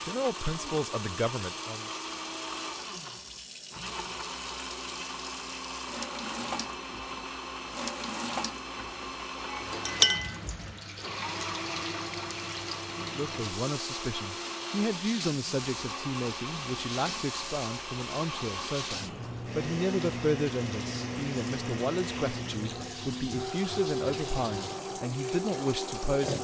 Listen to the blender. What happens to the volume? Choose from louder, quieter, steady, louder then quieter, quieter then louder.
steady.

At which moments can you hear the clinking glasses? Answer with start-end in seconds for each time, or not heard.
9.5-10.3.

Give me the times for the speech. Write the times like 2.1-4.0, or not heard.
0.0-1.9, 12.9-26.3.